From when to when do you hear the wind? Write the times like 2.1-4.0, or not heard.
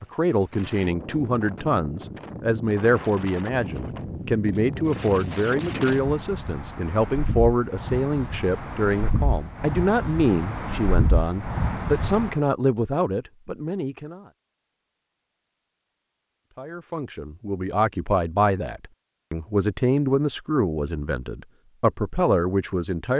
0.0-12.4.